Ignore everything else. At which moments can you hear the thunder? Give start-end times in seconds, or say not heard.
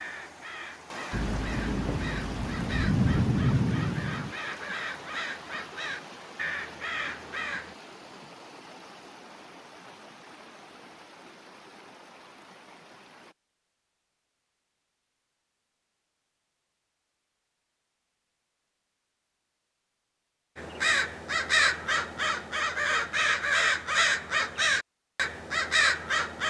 1.1-4.3.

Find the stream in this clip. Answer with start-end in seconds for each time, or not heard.
0.0-13.3.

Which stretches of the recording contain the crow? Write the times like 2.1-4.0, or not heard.
0.0-7.8, 20.6-26.4.